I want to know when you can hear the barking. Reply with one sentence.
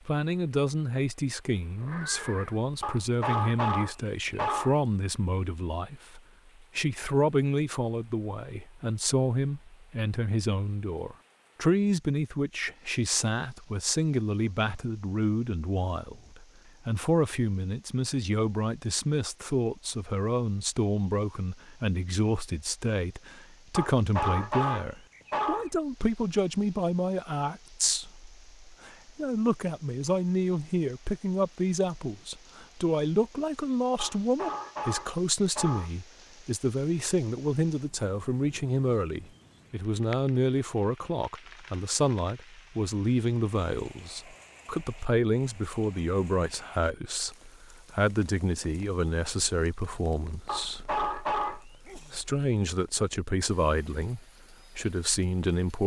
The barking can be heard from 2.8 to 4.8 s, from 23.8 to 25.7 s, from 34.0 to 36.0 s and from 50.5 to 52.0 s.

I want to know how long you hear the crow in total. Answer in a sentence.
The crow can't be heard in this clip.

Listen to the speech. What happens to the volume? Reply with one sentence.
The volume of the speech stays about the same.